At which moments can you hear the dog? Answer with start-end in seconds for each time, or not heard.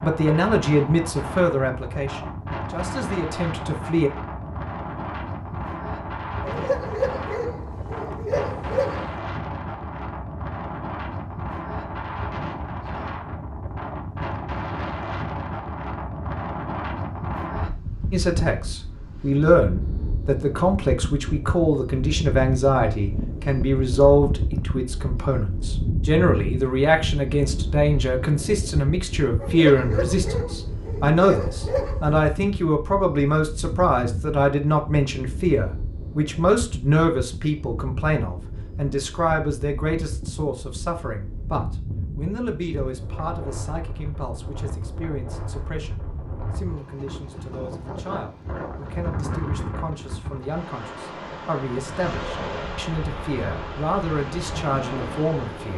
6.4-9.1, 29.4-32.1.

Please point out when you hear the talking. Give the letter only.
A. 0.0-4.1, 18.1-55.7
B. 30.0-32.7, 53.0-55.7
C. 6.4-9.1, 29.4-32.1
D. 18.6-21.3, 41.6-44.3
A.